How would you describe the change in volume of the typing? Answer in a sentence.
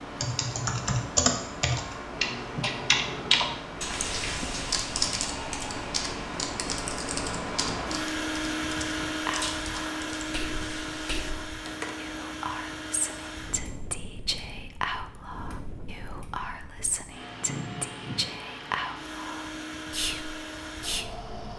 The volume of the typing goes down.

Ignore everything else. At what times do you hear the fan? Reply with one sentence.
The fan can be heard from 0.0 to 21.5 s.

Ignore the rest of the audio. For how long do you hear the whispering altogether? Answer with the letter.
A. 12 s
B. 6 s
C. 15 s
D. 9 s
A.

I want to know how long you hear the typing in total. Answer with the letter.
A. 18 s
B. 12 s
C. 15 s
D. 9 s
B.